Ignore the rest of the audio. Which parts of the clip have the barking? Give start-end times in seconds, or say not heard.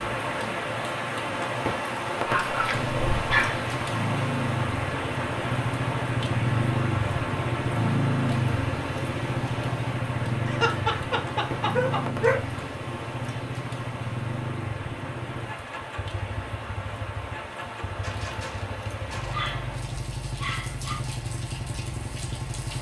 2.2-3.6, 10.4-12.4, 18.0-21.0.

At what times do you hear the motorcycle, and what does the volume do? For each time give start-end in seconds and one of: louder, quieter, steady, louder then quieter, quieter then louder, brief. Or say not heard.
2.7-22.7 quieter.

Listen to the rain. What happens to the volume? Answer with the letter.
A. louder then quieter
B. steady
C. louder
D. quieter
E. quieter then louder
D.